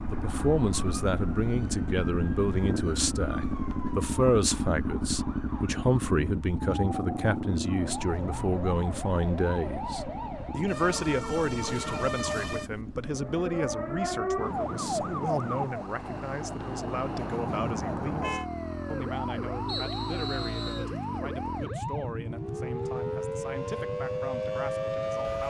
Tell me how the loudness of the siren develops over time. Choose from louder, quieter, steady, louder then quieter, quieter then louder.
louder.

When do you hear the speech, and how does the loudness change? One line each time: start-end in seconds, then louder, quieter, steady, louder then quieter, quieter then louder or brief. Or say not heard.
0.1-25.4 quieter.